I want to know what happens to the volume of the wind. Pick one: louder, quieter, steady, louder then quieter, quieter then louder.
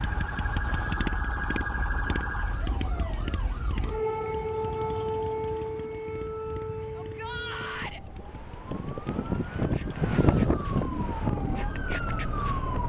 louder.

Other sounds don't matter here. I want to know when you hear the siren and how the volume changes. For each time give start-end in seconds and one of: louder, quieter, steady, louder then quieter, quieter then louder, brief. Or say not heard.
0.0-12.8 quieter then louder.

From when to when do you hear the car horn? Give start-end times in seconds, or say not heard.
not heard.